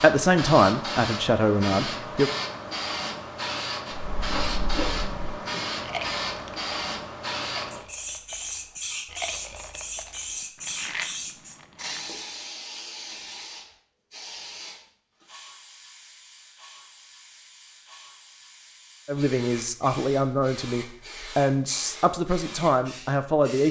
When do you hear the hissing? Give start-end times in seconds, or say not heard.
0.0-23.6.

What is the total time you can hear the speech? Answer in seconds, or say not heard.
7 s.